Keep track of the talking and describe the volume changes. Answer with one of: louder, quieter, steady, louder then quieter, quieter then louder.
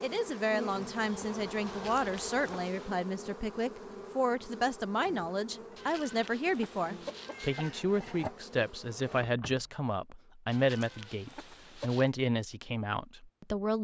steady.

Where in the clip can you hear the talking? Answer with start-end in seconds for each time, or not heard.
0.0-13.7.